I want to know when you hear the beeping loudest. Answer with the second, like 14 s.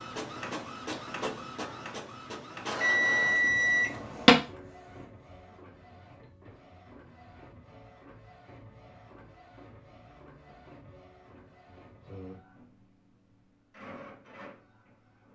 4 s.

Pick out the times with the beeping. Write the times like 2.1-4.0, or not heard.
2.8-4.3.